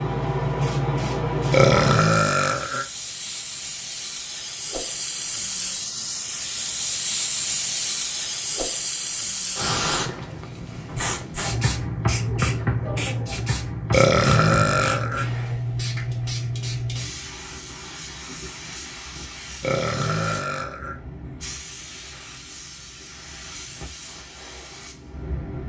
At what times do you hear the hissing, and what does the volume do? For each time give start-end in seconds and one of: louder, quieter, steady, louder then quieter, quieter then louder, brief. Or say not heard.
0.0-25.6 quieter.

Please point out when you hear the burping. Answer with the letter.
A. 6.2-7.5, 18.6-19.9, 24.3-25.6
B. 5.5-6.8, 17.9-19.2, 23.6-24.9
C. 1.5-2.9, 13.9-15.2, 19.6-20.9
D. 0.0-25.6
C.